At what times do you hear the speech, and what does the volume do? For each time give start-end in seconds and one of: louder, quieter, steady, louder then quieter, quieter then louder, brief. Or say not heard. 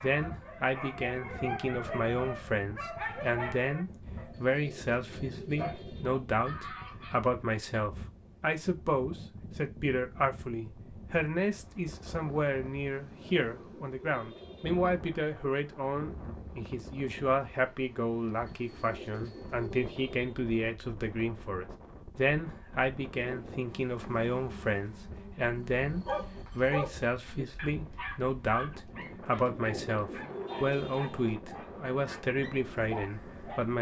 0.0-33.7 steady.